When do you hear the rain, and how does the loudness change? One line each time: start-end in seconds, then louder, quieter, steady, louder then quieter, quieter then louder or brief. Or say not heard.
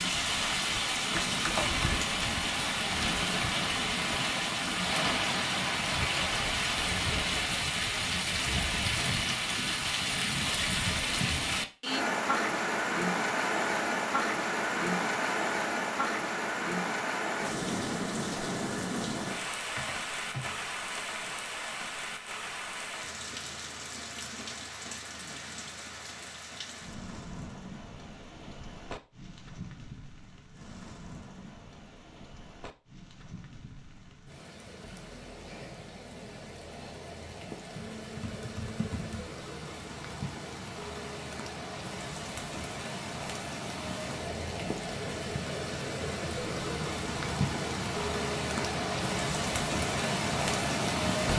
0.0-51.3 quieter then louder.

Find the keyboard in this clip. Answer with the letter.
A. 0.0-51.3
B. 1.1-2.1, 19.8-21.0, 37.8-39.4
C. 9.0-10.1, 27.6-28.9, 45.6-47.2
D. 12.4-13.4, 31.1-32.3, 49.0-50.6
B.